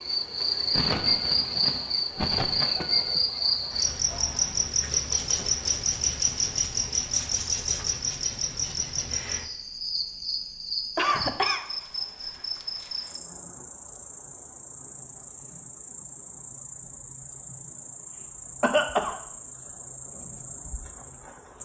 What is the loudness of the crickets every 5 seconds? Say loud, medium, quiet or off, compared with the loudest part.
loud, loud, medium, quiet, quiet.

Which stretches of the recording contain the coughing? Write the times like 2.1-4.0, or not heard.
0.7-3.2, 10.9-11.7, 18.6-19.2.